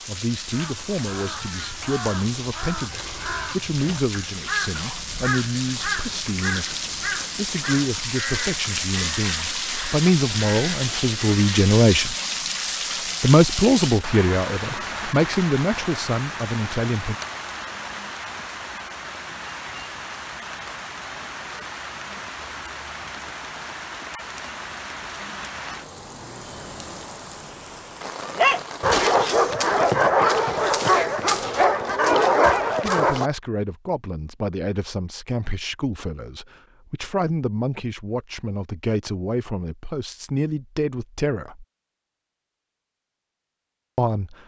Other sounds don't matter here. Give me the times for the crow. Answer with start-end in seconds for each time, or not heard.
0.5-11.7.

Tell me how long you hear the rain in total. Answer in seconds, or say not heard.
29 s.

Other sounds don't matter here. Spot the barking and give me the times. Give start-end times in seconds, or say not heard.
28.2-33.3.